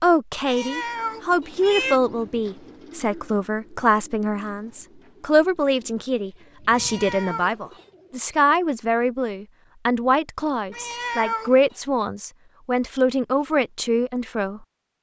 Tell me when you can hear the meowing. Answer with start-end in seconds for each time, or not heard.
0.5-2.0, 6.7-7.8, 10.7-11.8.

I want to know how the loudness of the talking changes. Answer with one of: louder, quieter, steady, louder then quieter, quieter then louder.
steady.